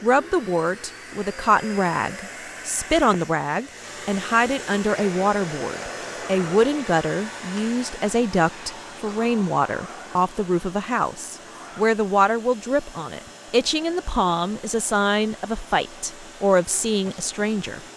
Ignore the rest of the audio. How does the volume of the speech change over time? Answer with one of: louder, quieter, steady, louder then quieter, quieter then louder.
steady.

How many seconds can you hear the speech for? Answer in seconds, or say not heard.
18 s.